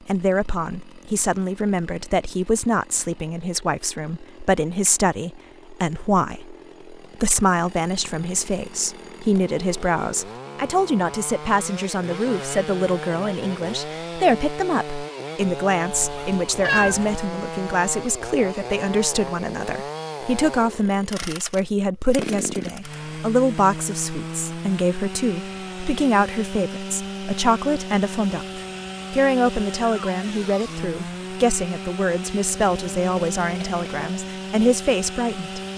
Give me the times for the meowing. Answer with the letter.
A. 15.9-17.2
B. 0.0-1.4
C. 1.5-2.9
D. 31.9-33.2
A.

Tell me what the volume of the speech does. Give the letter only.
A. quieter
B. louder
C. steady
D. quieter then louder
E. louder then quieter
C.